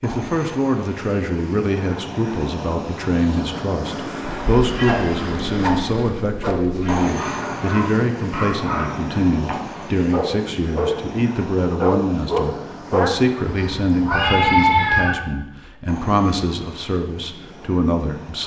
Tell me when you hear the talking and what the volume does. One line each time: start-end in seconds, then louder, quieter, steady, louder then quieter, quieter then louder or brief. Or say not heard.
0.0-18.4 steady.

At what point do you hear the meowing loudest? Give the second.
15 s.